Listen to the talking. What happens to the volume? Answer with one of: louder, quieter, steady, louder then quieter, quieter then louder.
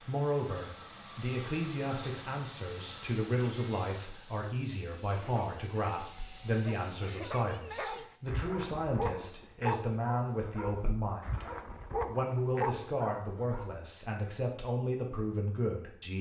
steady.